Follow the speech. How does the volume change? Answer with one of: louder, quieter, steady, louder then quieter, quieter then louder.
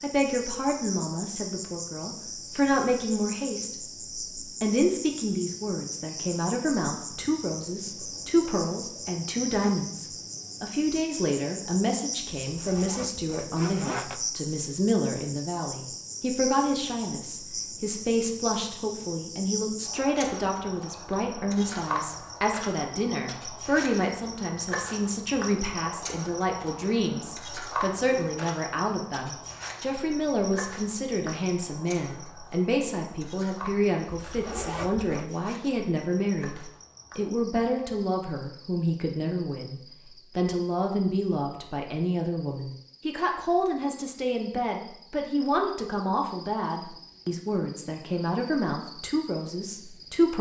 steady.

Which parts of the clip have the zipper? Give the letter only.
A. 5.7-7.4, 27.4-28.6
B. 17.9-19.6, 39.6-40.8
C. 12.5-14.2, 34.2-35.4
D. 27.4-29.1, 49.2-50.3
C.